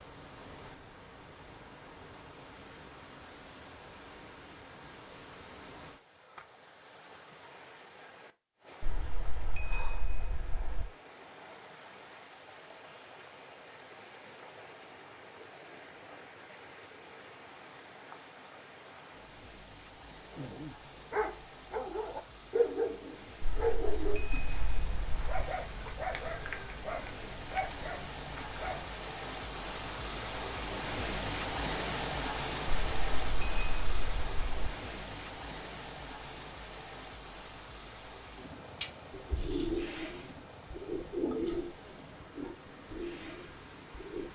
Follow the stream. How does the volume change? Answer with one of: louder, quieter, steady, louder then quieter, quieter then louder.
louder then quieter.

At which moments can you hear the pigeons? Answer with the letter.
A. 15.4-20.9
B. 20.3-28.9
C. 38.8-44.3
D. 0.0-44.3
C.